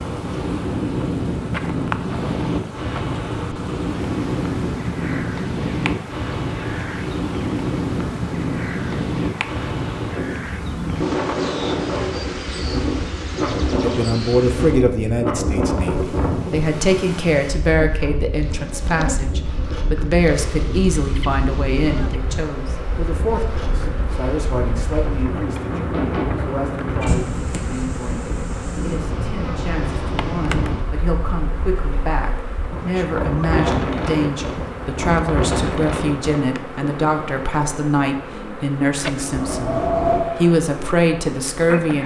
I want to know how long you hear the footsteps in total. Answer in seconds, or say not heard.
not heard.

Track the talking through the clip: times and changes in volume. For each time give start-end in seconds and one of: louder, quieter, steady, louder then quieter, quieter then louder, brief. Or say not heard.
13.8-42.0 quieter then louder.